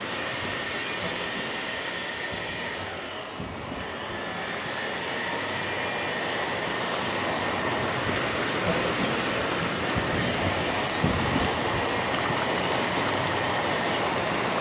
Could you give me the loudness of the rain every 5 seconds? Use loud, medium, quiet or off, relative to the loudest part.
medium, loud, loud.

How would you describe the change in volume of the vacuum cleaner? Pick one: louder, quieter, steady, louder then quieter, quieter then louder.
steady.